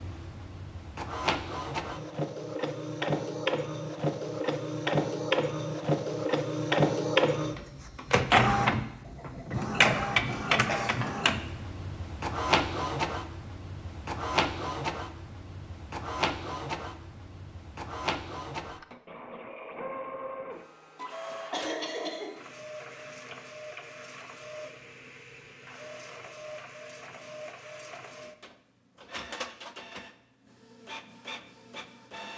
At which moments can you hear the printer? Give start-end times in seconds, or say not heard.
0.0-32.3.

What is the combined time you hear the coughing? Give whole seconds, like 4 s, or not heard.
2 s.